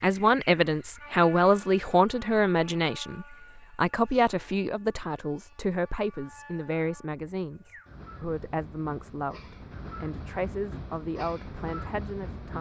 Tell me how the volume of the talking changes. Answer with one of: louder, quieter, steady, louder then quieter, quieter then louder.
quieter.